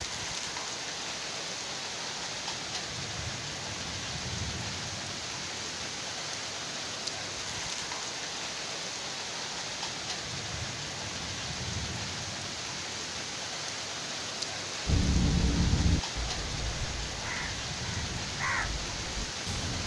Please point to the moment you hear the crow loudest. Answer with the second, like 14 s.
15 s.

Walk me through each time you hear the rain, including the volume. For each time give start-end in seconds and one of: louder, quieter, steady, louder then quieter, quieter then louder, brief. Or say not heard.
0.0-19.8 steady.